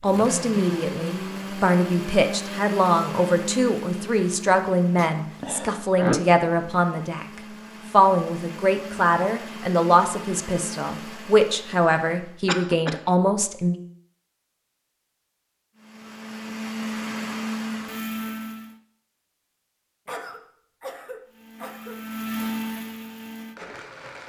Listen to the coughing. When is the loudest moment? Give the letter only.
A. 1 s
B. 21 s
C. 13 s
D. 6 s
D.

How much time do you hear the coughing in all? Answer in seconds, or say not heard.
4 s.